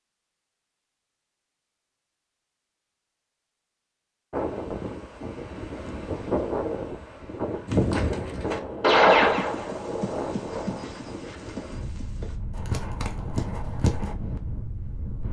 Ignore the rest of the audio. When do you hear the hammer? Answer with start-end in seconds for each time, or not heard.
not heard.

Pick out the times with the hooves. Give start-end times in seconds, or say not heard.
7.7-14.2.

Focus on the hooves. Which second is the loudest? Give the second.
9 s.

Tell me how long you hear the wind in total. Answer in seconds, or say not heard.
11 s.